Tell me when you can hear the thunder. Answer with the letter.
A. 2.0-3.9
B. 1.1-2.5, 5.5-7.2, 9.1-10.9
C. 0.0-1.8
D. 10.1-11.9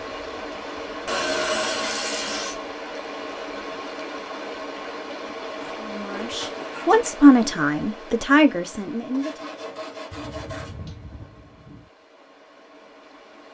D.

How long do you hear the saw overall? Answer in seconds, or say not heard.
5 s.